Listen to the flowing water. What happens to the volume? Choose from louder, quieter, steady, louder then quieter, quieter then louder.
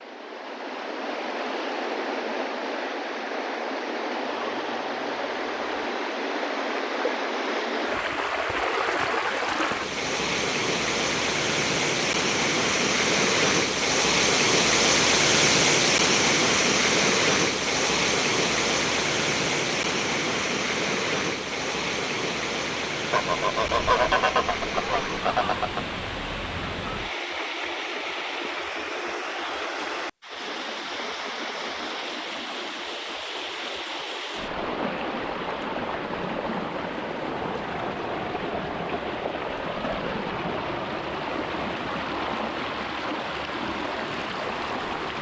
louder then quieter.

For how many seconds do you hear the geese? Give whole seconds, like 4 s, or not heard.
4 s.